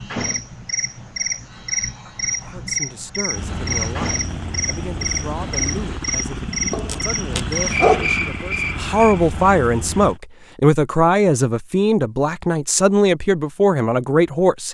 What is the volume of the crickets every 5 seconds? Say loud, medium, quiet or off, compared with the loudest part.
loud, loud, off.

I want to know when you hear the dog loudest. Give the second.
8 s.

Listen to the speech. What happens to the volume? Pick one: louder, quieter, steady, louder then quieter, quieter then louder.
louder.